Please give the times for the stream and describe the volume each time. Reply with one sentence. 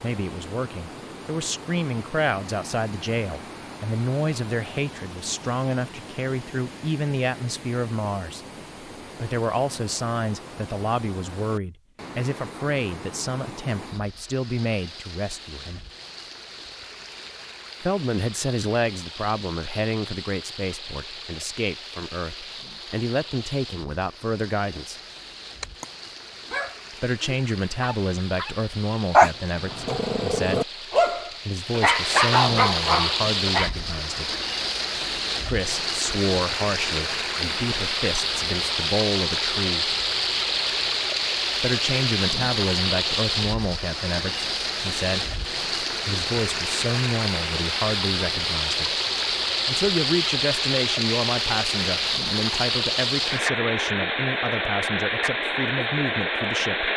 The stream can be heard from 0.0 to 56.9 s, getting louder.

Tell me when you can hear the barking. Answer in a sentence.
The barking can be heard from 25.6 to 33.7 s.